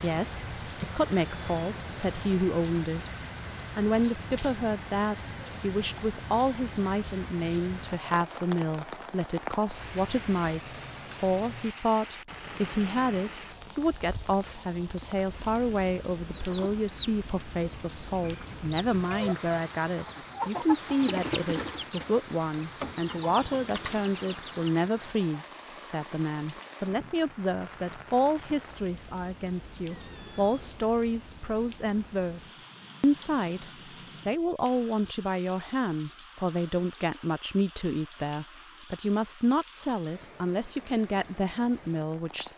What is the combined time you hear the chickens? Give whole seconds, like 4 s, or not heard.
9 s.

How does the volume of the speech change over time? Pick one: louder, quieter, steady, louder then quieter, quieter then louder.
steady.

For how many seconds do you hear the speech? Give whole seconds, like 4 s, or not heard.
42 s.